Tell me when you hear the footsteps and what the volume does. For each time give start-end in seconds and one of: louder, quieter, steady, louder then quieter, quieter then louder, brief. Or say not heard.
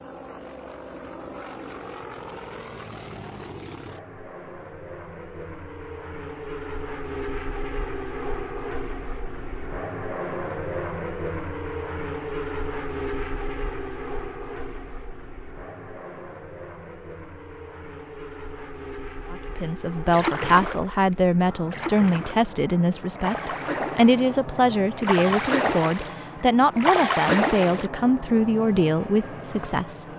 not heard.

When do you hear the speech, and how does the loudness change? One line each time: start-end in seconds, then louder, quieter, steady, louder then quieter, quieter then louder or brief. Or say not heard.
19.3-30.1 steady.